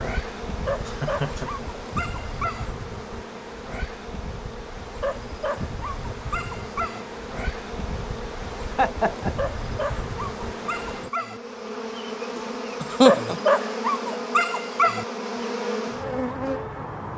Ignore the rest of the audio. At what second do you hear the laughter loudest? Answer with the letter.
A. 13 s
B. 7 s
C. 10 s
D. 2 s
A.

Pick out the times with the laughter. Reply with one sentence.
You can hear the laughter from 0.8 to 1.7 s, from 8.8 to 9.3 s and from 12.8 to 13.4 s.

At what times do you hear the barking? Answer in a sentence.
The barking can be heard from 0.7 to 2.6 s, from 5.0 to 7.0 s, from 9.3 to 11.4 s and from 13.1 to 15.1 s.